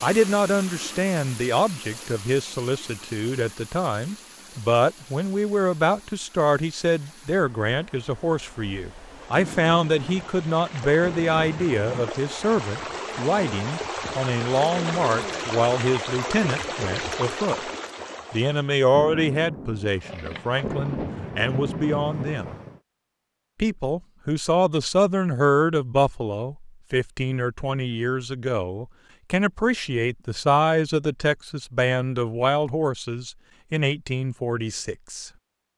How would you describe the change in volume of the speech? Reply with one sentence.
The volume of the speech stays about the same.